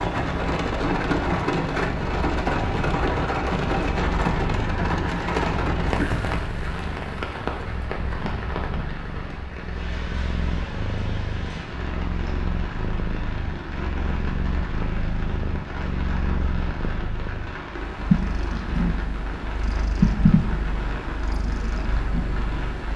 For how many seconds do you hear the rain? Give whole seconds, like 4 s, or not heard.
23 s.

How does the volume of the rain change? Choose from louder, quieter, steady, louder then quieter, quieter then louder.
quieter.